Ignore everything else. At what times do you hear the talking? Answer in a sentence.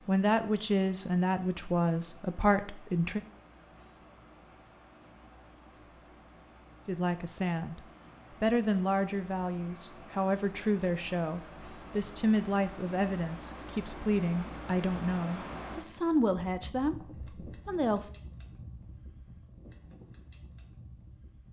You can hear the talking from 0.1 to 3.2 s and from 6.8 to 18.1 s.